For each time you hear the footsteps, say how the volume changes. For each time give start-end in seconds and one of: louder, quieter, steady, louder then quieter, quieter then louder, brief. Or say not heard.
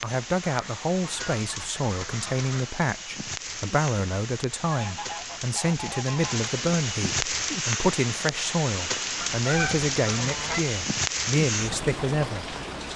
not heard.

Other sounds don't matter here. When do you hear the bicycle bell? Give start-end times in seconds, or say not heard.
not heard.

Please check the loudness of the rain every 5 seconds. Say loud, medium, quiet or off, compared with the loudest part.
medium, loud, loud.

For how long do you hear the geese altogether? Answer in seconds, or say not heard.
6 s.